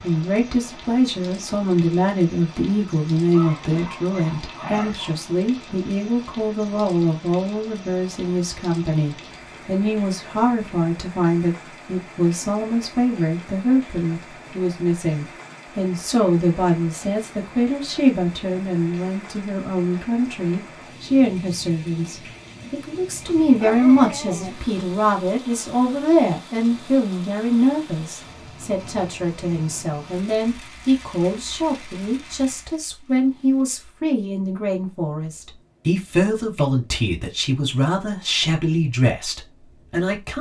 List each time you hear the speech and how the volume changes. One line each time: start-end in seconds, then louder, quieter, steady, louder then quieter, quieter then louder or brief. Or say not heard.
0.0-40.3 steady.